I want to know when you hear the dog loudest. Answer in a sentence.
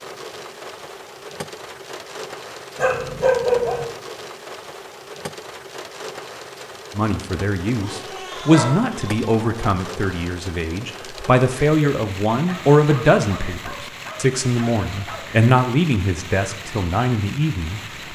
The loudest moment of the dog is at 3 seconds.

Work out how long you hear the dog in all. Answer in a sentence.
You can hear the dog for 6 seconds altogether.